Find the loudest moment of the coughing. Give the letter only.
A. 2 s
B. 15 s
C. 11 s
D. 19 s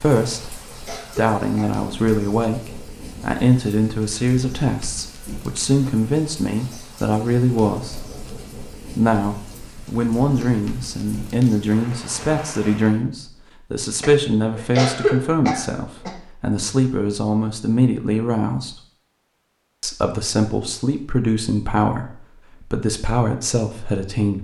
B.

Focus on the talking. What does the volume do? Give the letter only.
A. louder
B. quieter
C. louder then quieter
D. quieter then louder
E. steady
E.